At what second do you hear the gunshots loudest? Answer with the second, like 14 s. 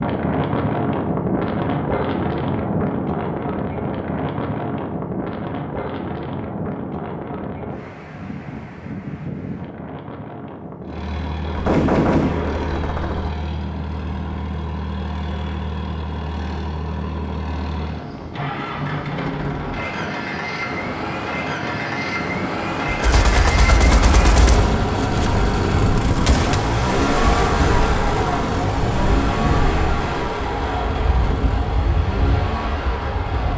12 s.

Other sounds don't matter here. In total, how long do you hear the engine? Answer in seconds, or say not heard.
23 s.